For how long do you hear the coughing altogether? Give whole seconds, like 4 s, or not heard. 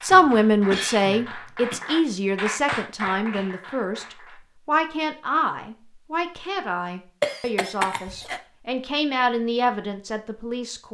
3 s.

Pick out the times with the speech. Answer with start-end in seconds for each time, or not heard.
0.0-10.9.